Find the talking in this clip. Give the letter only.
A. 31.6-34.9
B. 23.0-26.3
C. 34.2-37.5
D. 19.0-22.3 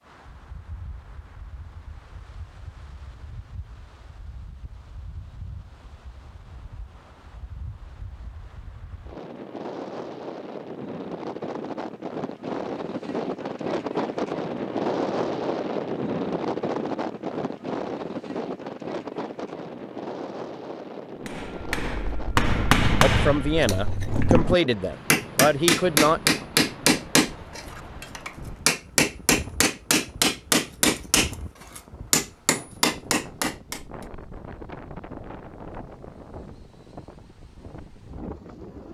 B.